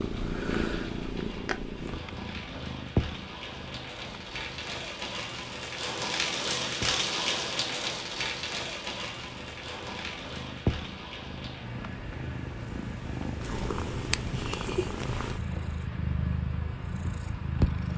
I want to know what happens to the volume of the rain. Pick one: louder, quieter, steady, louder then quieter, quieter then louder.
louder then quieter.